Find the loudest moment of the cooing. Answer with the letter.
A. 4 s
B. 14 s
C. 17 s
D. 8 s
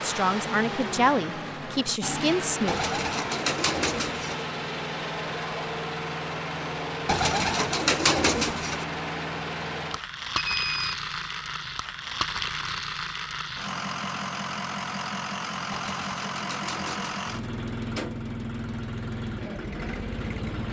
D.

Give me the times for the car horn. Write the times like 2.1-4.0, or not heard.
not heard.